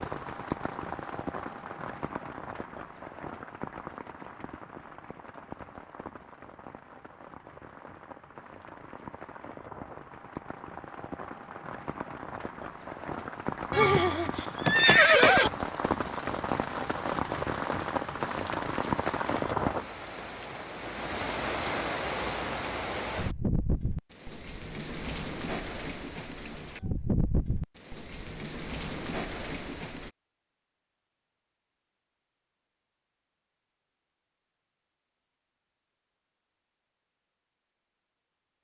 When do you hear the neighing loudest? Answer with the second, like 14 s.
15 s.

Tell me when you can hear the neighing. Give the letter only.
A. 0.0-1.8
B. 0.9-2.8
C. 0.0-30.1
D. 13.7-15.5
D.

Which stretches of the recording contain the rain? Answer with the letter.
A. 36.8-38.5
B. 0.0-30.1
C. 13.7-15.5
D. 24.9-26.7
B.